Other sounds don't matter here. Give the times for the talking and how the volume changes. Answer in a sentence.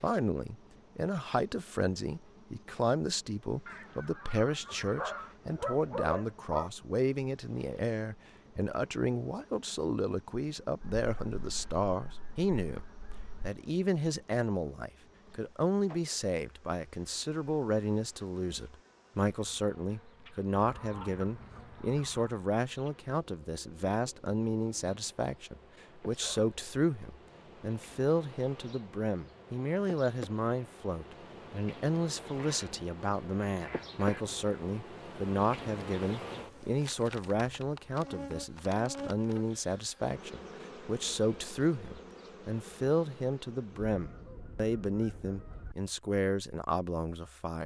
You can hear the talking from 0.0 to 47.6 s, at a steady volume.